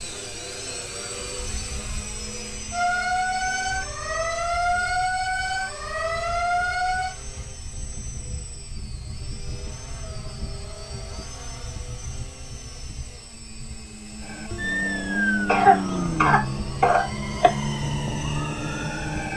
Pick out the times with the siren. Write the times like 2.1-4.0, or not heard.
2.7-7.2, 14.2-19.3.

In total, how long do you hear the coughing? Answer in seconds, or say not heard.
2 s.